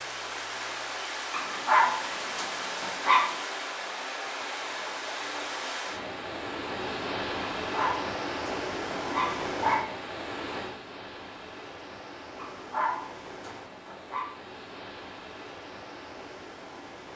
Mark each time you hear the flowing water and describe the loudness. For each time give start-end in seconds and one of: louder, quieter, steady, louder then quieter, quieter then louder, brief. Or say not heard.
0.0-17.1 quieter.